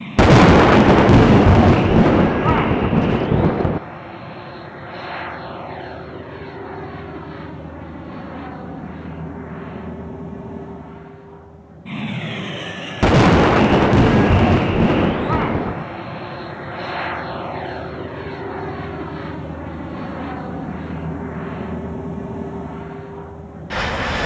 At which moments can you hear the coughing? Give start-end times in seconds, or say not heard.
not heard.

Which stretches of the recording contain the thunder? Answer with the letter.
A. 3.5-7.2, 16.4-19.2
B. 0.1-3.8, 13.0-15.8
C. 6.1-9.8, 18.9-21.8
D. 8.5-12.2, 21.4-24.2
B.